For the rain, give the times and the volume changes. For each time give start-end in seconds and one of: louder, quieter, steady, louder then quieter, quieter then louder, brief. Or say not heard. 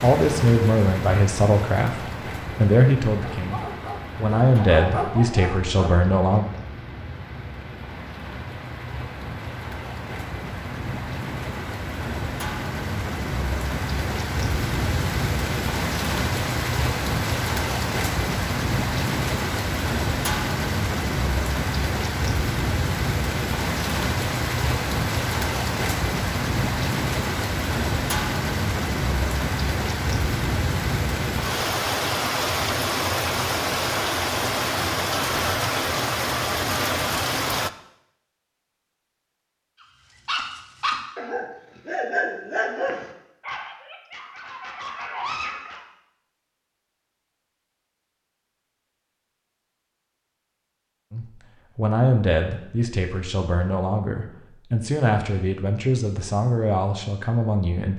0.0-37.7 louder.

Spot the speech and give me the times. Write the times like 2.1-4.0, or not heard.
0.0-6.5, 51.1-57.9.